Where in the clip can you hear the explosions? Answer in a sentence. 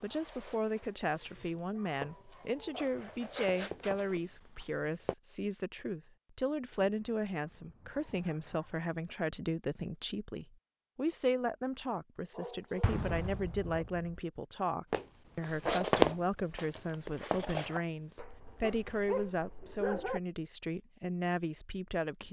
The explosions can be heard from 12.8 to 14.1 s.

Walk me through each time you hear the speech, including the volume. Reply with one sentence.
The speech can be heard from 0.0 to 22.2 s, at a steady volume.